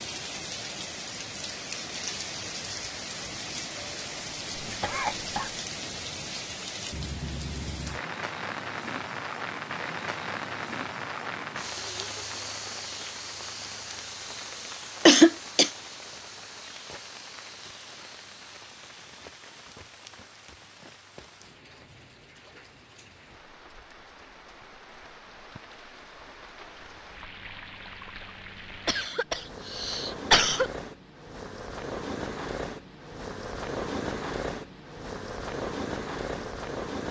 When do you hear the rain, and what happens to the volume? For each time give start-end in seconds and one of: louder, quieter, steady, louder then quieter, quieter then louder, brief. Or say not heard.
0.0-37.0 quieter then louder.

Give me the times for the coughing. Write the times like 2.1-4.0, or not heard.
4.6-5.5, 15.1-15.7, 28.9-30.7.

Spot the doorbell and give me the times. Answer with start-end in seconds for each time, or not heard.
not heard.